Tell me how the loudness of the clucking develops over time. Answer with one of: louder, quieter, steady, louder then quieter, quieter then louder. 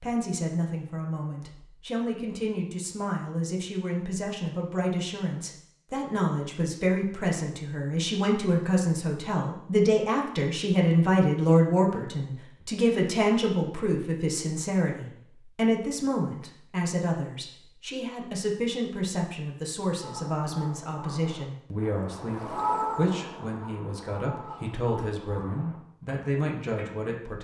louder then quieter.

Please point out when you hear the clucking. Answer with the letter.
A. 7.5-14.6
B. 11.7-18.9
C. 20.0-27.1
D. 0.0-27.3
C.